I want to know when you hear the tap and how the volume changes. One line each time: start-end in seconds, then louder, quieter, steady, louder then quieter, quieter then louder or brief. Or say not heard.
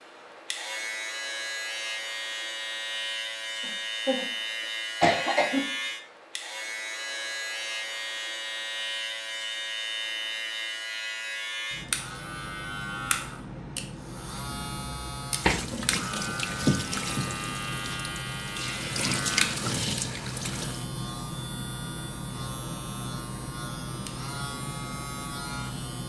15.3-20.9 quieter then louder.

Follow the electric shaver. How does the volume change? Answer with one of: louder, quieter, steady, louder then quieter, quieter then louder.
steady.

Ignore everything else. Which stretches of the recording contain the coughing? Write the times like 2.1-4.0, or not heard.
3.6-4.2, 5.0-5.6.